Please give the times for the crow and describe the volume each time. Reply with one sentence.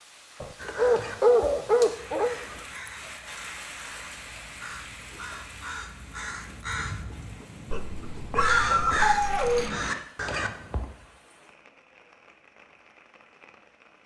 You can hear the crow from 0.6 to 10.8 s, getting louder.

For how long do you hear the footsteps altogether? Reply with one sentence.
You can't hear the footsteps here.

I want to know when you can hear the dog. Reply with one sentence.
The dog can be heard from 0.4 to 2.4 s and from 7.7 to 9.7 s.